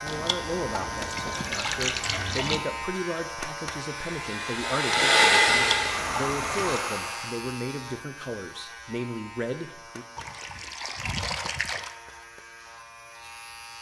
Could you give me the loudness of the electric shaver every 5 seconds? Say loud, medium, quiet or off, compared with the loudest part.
loud, medium, medium.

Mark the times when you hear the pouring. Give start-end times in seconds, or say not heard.
0.1-2.6, 5.5-6.8, 10.2-11.9.